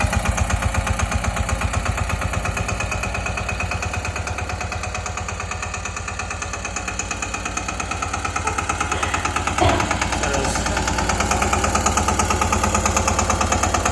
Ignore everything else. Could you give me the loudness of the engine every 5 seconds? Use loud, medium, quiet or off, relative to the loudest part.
medium, medium, loud.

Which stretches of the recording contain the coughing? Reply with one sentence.
You can hear the coughing from 8.4 to 9.9 s.